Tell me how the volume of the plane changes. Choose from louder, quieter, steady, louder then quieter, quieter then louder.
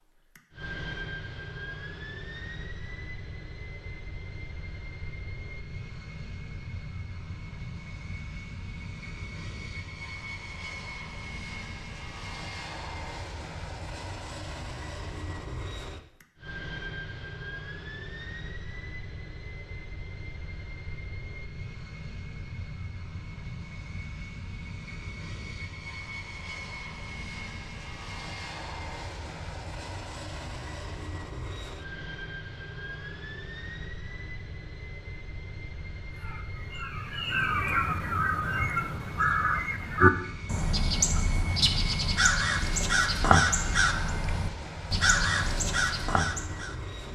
steady.